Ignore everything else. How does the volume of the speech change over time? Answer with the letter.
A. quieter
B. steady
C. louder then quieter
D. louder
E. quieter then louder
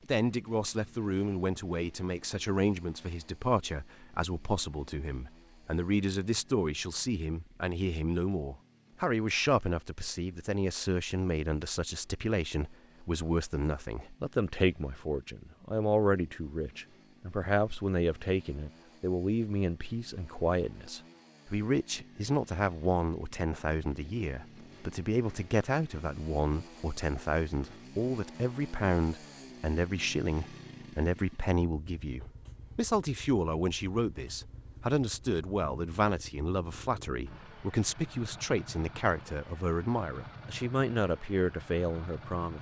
B.